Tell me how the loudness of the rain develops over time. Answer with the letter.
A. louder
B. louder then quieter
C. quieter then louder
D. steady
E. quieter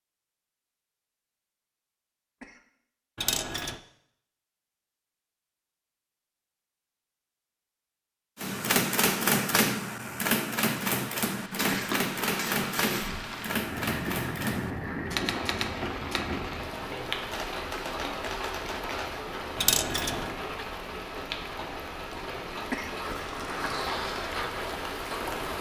D.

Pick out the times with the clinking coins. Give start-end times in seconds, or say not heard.
3.2-3.8, 11.6-13.1, 19.6-20.2.